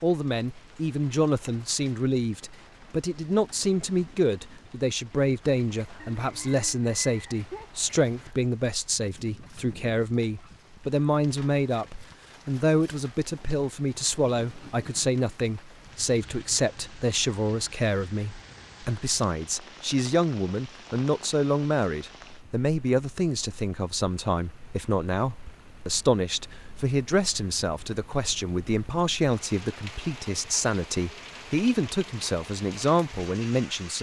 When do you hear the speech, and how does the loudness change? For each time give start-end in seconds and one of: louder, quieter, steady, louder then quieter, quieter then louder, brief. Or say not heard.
0.0-33.9 steady.